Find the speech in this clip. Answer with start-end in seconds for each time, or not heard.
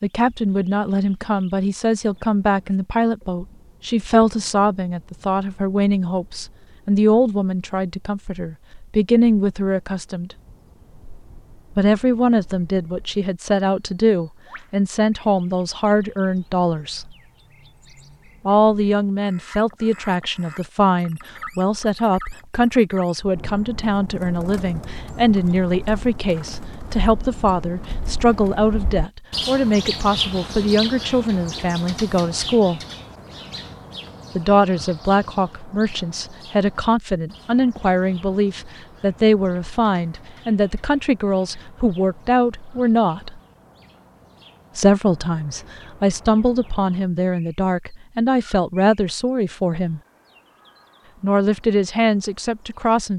0.0-10.3, 11.8-17.1, 18.4-32.8, 34.4-43.4, 44.8-50.0, 51.2-53.1.